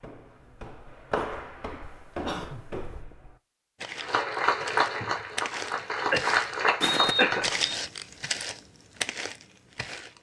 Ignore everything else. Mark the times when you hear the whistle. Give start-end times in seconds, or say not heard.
6.8-7.8.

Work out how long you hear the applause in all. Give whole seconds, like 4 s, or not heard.
4 s.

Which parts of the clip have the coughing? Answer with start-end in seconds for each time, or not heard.
1.8-3.0, 6.1-7.5.